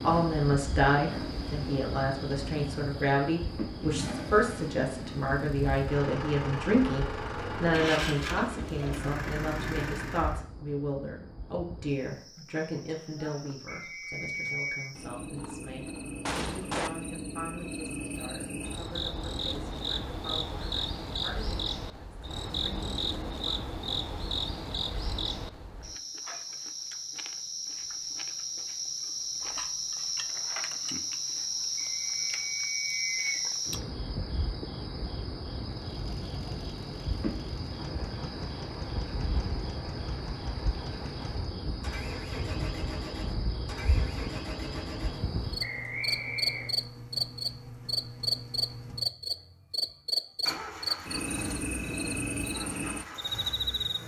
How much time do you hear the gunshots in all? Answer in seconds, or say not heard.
2 s.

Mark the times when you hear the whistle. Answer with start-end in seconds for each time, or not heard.
13.7-14.9, 31.8-33.5, 45.6-46.7.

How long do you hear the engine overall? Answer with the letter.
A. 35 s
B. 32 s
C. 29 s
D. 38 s
C.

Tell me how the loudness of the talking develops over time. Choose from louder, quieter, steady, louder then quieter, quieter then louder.
quieter.